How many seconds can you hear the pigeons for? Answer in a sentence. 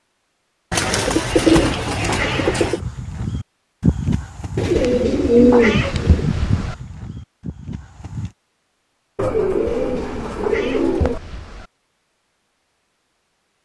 The pigeons can be heard for 6 seconds in total.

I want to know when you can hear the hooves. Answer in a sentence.
You can hear the hooves from 2.8 to 8.3 s.